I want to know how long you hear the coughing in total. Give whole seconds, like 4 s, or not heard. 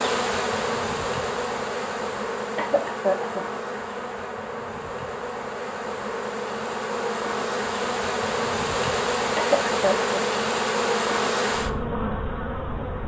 2 s.